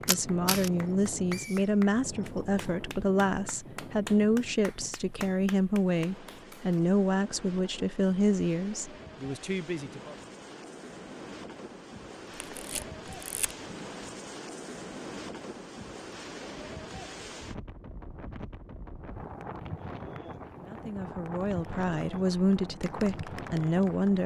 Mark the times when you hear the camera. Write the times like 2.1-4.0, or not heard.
0.1-0.7, 12.4-13.6.